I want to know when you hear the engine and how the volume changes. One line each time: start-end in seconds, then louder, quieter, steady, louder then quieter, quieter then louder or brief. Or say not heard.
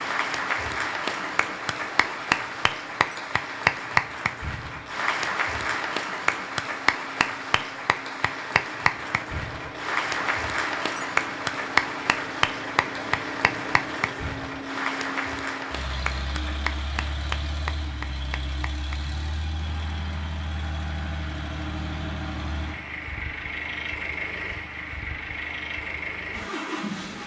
0.0-27.2 louder.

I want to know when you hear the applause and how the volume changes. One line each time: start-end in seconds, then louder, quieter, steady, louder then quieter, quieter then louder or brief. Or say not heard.
0.0-27.2 quieter.